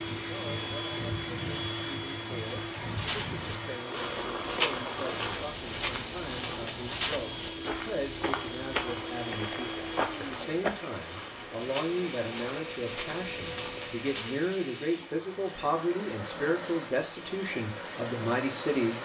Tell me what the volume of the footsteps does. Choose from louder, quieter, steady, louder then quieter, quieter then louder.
quieter.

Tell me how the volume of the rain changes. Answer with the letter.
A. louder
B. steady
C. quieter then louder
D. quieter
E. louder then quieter
D.